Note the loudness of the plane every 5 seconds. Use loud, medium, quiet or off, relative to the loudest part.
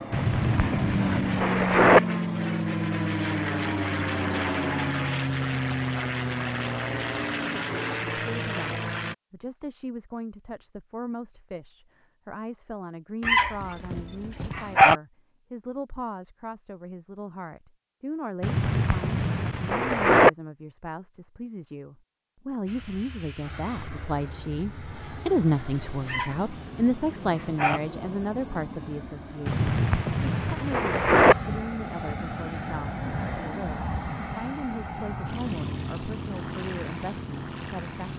loud, loud, off, off, quiet, quiet, medium, medium.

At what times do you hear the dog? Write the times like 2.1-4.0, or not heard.
13.2-14.9, 26.1-27.8.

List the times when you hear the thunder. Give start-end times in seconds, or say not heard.
0.1-2.0, 18.4-20.3, 29.4-31.4.